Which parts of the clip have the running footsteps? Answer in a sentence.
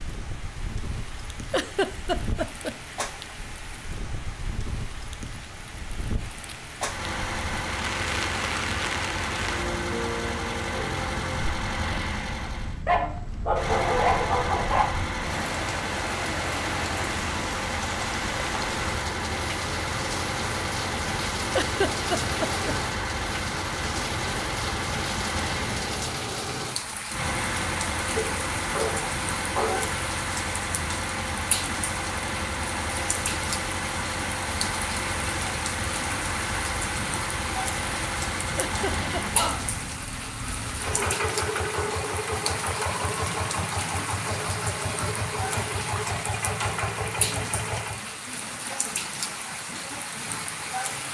The running footsteps can't be heard in this clip.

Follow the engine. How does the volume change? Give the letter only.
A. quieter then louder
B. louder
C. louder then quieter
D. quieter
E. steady
E.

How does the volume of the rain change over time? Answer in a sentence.
The volume of the rain stays about the same.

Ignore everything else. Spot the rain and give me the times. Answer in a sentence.
You can hear the rain from 0.0 to 51.0 s.